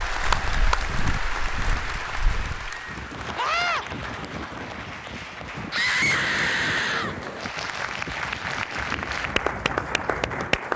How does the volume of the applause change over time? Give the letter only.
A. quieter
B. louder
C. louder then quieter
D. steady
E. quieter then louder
E.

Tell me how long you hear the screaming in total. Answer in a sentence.
The screaming can be heard for 2 seconds in total.